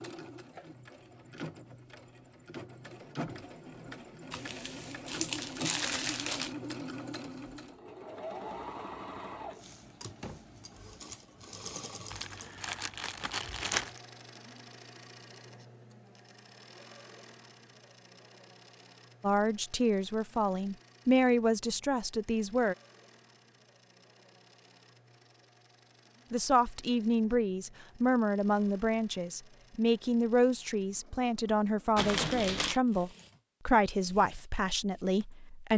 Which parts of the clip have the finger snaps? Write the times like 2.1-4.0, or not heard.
not heard.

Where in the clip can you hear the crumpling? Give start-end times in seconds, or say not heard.
4.3-6.5, 12.1-14.0, 31.9-32.8.